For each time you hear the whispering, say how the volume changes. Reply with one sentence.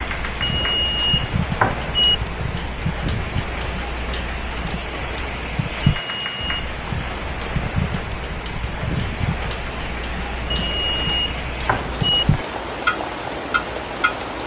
The whispering can't be heard in this clip.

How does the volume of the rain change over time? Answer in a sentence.
The volume of the rain stays about the same.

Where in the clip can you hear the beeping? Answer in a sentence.
The beeping can be heard from 0.4 to 2.1 s, from 5.8 to 6.7 s and from 10.5 to 12.2 s.